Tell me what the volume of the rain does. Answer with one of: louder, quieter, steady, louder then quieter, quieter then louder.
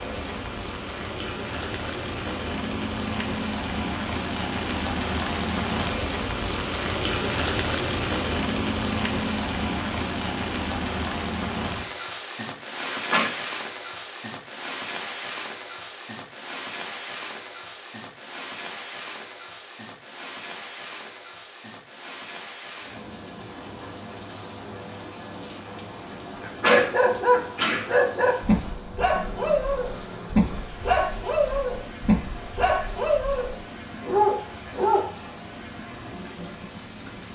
quieter.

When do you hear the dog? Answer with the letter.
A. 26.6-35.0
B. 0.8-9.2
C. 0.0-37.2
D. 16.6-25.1
A.